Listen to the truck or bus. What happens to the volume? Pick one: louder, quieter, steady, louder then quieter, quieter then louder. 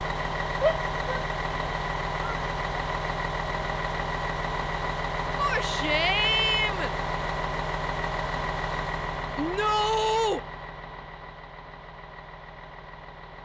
quieter.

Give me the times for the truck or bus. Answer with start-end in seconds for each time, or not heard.
0.0-13.4.